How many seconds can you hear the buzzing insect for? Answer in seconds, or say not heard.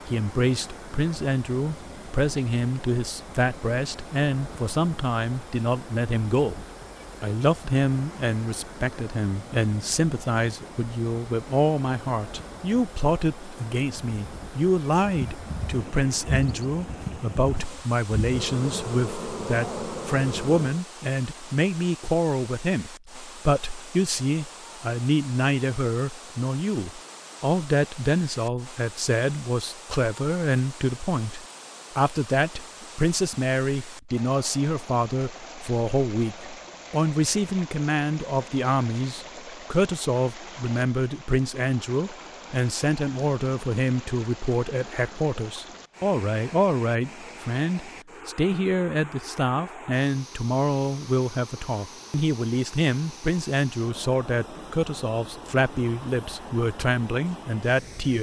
6 s.